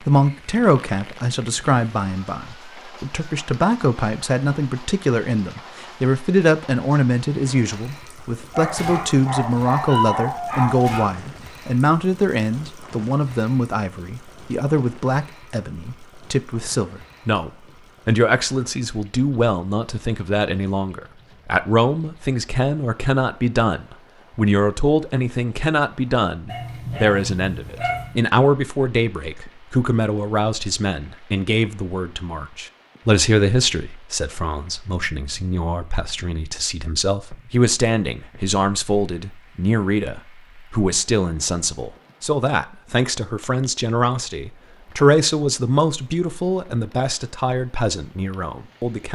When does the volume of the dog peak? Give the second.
10 s.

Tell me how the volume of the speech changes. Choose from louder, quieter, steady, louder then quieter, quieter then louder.
steady.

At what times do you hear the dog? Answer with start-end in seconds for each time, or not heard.
8.5-11.1, 26.4-28.1.